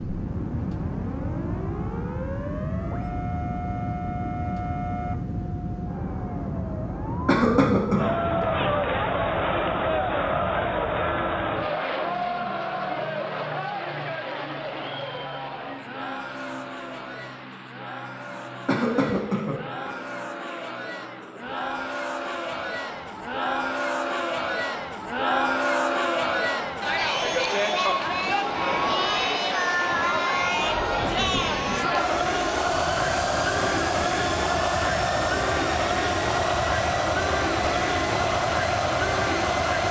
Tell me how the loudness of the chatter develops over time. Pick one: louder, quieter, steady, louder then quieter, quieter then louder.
quieter then louder.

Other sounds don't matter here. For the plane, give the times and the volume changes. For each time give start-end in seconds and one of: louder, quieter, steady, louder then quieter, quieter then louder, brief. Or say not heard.
0.0-39.8 quieter then louder.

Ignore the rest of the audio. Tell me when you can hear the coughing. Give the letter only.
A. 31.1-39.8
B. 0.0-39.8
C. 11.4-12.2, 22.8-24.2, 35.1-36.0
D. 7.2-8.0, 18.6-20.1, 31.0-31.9
D.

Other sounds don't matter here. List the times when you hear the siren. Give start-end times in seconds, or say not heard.
0.0-8.8.